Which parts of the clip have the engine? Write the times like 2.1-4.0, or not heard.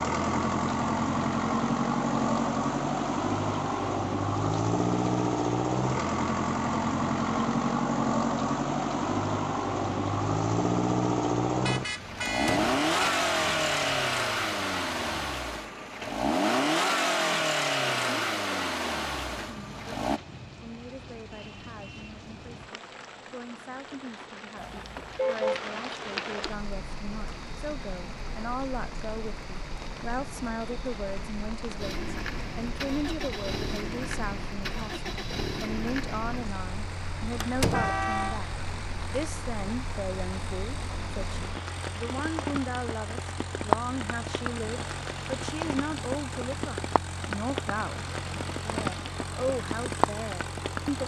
0.0-20.2, 31.8-51.0.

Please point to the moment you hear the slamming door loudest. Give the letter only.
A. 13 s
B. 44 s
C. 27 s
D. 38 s
D.